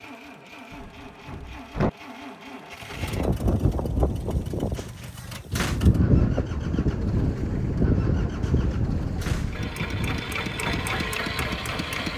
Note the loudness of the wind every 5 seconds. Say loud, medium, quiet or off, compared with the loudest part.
loud, loud, medium.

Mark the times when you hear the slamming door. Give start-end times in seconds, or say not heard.
0.7-1.9, 4.8-5.8, 8.4-9.6.